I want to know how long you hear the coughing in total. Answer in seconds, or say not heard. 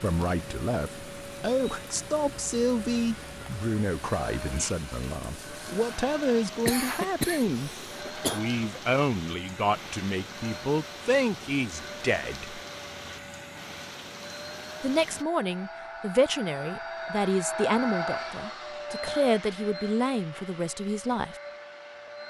2 s.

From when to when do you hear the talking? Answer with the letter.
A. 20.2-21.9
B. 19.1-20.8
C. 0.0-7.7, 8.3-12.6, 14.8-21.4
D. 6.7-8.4
C.